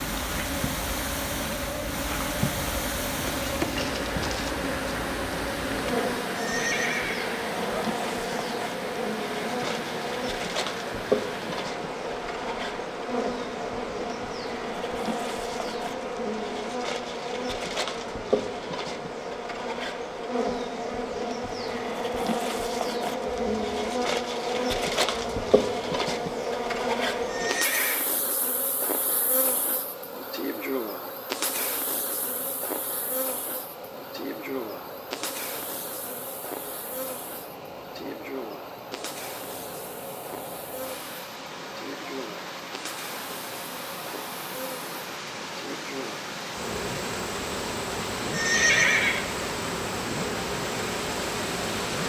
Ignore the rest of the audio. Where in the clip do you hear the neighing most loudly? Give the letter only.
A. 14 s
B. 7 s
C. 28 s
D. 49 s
D.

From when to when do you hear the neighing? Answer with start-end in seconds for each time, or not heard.
6.3-7.3, 27.2-28.1, 48.3-49.2.